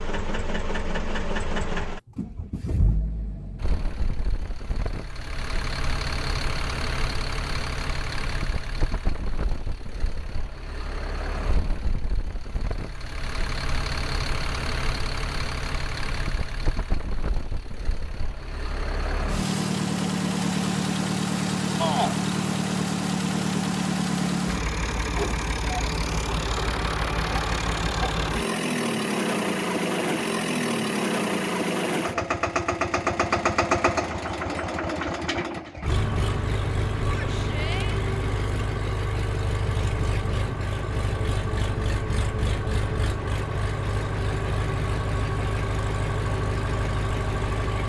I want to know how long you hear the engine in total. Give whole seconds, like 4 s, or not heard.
48 s.